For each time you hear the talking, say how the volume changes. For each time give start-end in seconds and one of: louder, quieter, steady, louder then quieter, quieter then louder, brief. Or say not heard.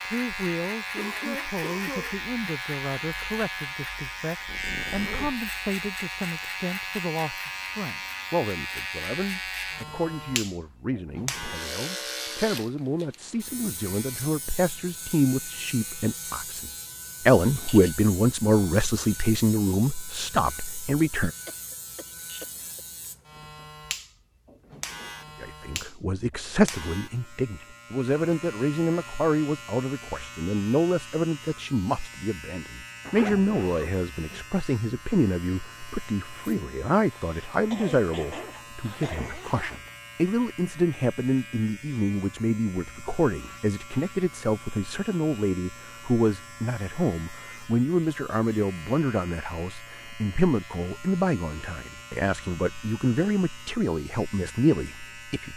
0.0-21.4 louder
25.4-55.5 steady.